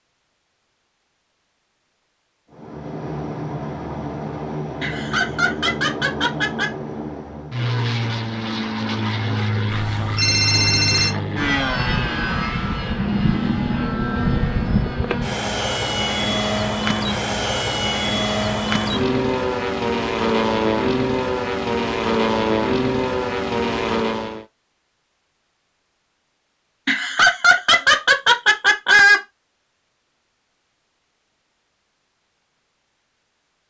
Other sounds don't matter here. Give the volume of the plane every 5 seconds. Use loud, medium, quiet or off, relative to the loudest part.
medium, medium, loud, loud, loud, off, off.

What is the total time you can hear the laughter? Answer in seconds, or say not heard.
4 s.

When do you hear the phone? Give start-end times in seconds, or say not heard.
9.7-11.2.